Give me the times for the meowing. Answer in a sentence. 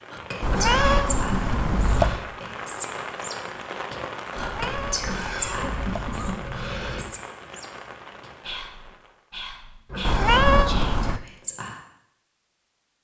The meowing can be heard from 0.4 to 2.1 s, from 4.3 to 6.3 s and from 10.1 to 11.2 s.